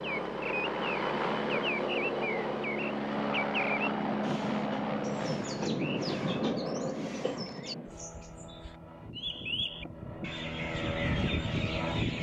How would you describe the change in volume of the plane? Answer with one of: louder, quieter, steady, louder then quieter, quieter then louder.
quieter then louder.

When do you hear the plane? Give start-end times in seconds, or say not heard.
0.0-12.1.